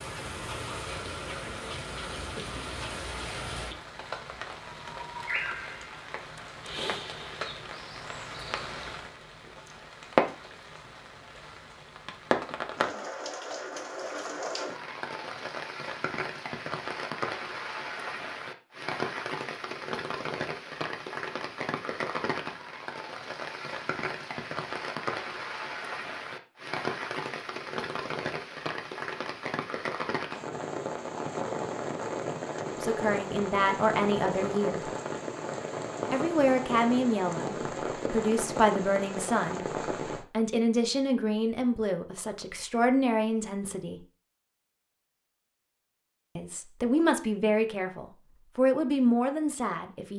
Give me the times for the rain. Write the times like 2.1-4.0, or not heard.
0.0-40.2.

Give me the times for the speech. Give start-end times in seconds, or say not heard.
32.8-34.9, 36.1-44.0, 46.4-50.1.